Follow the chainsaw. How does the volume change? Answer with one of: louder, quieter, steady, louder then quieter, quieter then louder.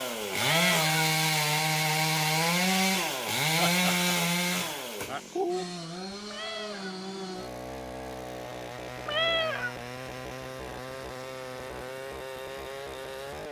quieter.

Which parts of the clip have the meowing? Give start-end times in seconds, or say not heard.
0.4-1.0, 6.2-7.0, 9.1-9.8.